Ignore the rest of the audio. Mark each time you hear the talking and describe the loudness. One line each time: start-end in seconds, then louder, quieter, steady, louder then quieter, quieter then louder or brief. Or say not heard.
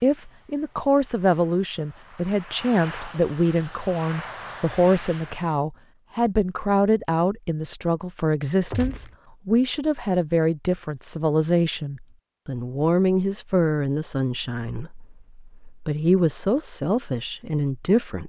0.0-18.2 steady.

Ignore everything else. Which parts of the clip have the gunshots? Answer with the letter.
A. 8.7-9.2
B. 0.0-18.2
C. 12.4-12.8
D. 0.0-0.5
A.